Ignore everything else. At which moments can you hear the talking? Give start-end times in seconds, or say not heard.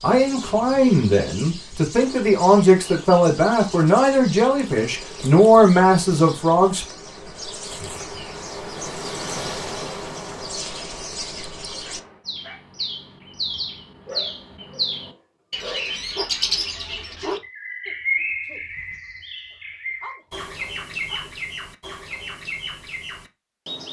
0.0-6.8.